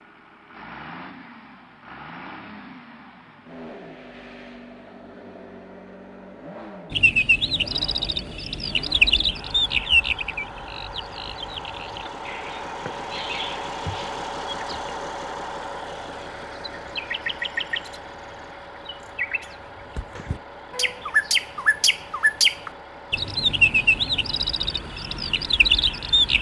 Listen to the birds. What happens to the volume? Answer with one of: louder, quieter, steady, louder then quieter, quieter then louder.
quieter then louder.